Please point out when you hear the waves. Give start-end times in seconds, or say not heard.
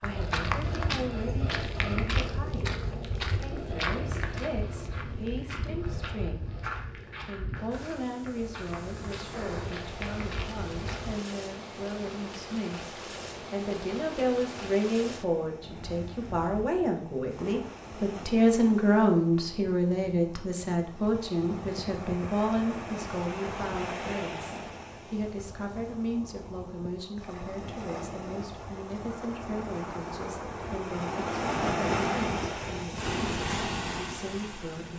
7.5-34.9.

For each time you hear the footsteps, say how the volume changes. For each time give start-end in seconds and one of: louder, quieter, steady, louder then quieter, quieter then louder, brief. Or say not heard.
0.0-11.2 quieter.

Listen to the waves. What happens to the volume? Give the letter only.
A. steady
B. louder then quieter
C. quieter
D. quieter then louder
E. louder
E.